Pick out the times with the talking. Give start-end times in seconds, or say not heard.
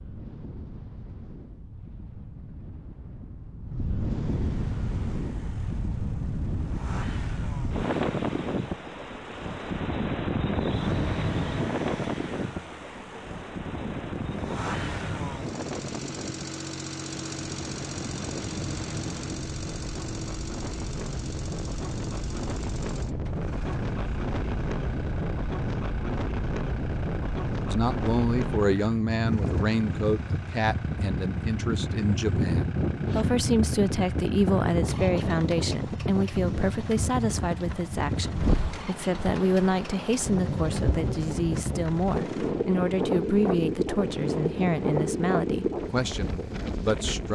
27.7-47.2.